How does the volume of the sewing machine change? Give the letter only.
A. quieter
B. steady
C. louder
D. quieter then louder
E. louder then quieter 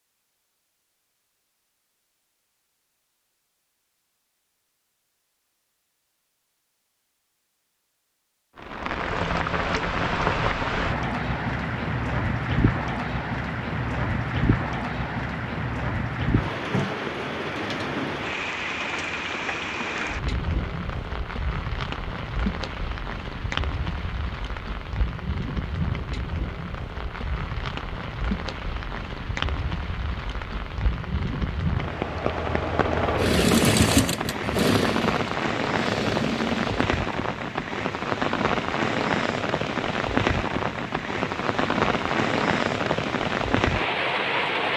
E.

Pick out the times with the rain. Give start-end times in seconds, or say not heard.
8.6-44.7.